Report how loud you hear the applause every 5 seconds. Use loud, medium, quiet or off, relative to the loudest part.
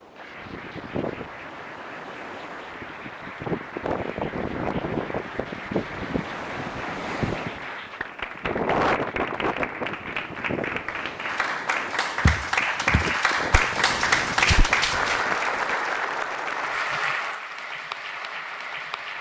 quiet, medium, loud, loud.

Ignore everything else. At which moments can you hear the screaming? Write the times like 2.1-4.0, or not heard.
not heard.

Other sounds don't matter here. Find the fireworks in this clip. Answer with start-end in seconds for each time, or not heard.
not heard.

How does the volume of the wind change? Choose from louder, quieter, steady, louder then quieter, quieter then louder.
louder then quieter.